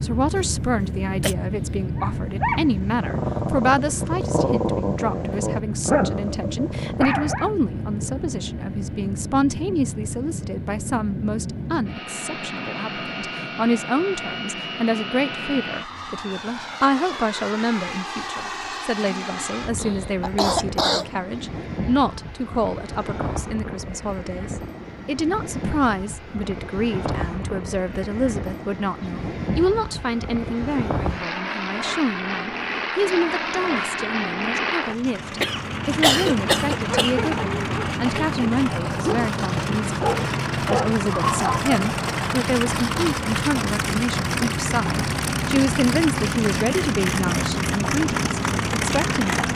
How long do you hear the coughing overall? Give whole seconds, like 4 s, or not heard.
4 s.